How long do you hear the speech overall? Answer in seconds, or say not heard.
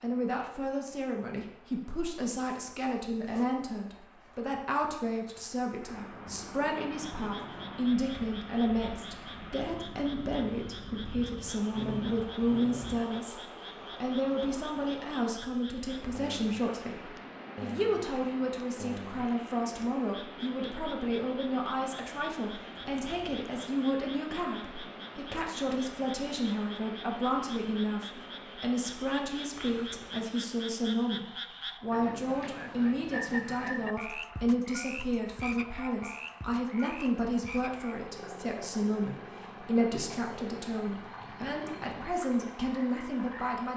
43 s.